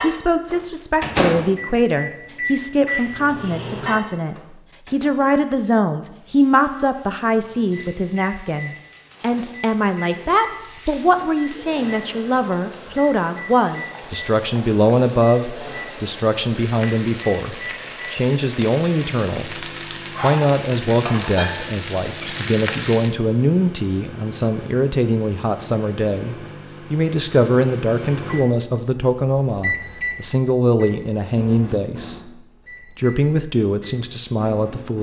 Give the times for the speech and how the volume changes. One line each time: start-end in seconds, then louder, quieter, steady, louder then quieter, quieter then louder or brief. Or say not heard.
0.0-34.9 steady.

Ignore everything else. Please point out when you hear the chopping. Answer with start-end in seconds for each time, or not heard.
not heard.